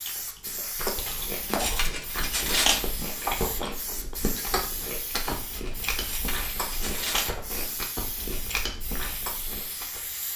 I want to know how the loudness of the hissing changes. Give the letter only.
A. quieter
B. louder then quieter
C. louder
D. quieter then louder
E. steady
E.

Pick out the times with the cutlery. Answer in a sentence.
The cutlery can be heard from 1.1 to 2.9 s and from 5.5 to 7.3 s.